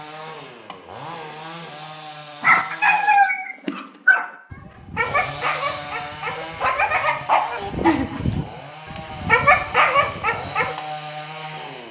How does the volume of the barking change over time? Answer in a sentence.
The volume of the barking goes down, then up.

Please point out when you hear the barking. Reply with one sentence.
You can hear the barking from 2.4 to 10.8 s.